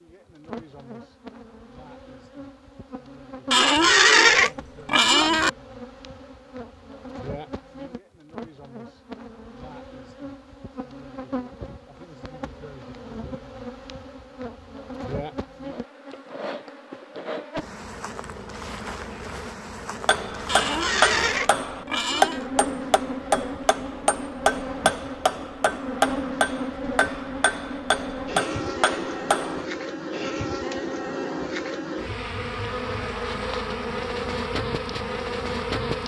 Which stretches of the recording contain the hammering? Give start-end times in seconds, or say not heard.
20.1-29.6.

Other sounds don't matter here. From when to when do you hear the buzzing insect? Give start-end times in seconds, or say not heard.
0.0-36.0.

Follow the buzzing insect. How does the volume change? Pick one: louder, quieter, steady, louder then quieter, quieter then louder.
louder.